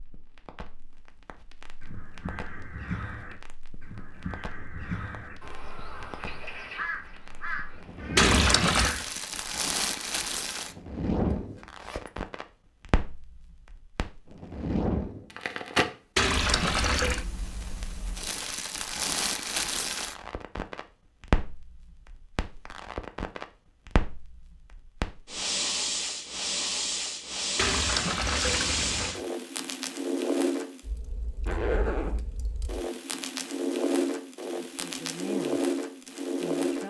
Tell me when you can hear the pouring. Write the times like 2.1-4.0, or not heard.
8.2-8.9, 16.1-17.2, 27.6-29.2.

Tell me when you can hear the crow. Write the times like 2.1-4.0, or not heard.
1.8-9.1.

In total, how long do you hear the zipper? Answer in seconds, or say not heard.
2 s.